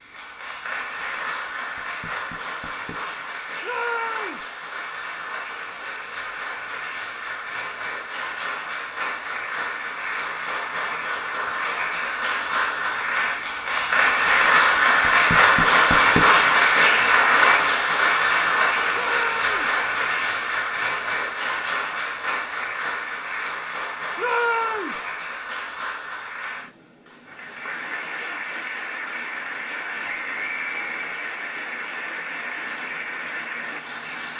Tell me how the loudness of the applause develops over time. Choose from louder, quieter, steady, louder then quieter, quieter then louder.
louder then quieter.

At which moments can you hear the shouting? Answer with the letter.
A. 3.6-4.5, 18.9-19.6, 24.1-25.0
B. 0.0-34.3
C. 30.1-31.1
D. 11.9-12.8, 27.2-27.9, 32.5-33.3
A.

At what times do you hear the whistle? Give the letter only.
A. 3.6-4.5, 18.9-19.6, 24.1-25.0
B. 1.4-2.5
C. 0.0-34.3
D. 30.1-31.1
D.